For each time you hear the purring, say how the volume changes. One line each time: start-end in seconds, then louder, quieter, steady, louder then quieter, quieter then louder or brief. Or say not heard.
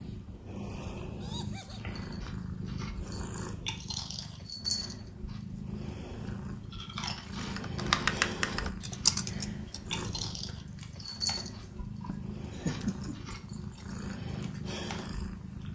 0.0-15.6 steady.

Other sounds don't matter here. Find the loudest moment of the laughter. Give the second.
13 s.